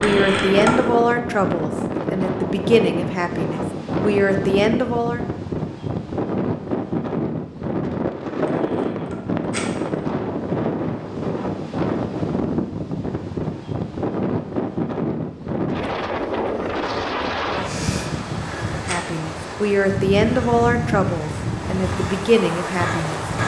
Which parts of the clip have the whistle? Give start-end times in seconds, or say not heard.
not heard.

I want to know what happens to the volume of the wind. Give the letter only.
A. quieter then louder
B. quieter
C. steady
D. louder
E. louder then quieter
C.